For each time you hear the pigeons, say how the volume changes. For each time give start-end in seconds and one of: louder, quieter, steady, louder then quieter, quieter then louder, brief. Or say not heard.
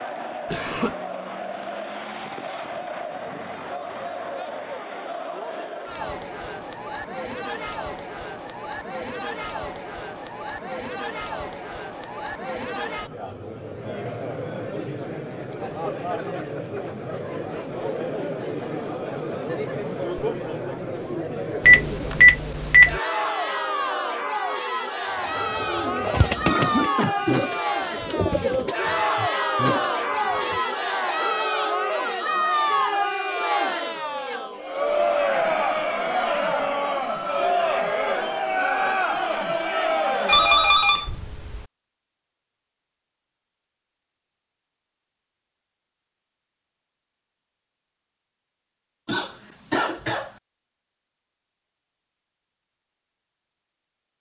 25.2-30.6 steady.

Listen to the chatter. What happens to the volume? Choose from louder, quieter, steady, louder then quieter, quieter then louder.
louder.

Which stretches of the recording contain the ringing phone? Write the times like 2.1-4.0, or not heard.
21.6-23.0, 40.2-41.6.